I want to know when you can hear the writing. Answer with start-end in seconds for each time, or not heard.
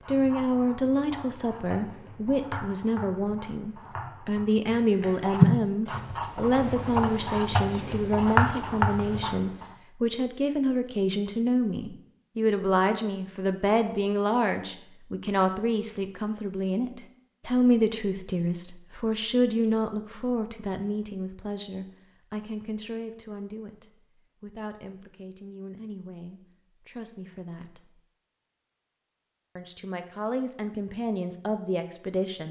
0.0-9.7.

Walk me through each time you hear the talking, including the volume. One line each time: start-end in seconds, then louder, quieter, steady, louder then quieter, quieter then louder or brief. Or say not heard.
0.1-28.0 quieter
29.6-32.4 brief.